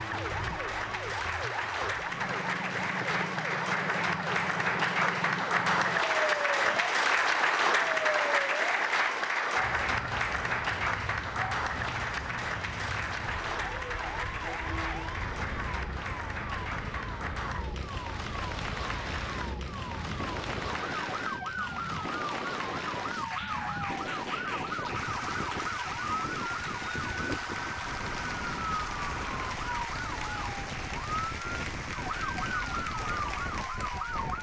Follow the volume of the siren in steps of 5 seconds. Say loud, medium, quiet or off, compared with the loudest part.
loud, loud, medium, medium, loud, loud, loud.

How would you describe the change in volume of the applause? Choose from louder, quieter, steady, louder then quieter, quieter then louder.
quieter.